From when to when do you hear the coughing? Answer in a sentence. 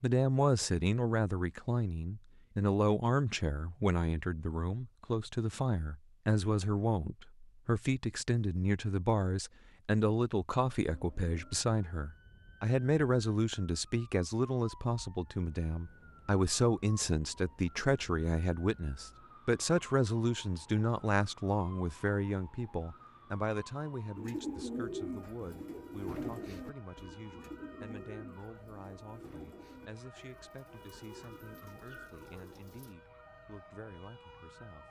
You can't hear the coughing here.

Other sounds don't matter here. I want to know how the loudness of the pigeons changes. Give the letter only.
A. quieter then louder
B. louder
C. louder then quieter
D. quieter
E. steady
D.